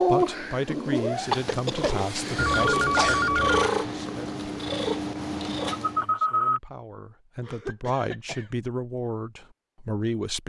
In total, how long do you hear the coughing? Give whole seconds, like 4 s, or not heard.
3 s.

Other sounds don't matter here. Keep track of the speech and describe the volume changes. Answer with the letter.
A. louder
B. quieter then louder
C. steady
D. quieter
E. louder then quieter
B.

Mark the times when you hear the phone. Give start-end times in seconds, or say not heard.
2.4-3.7, 5.7-6.6.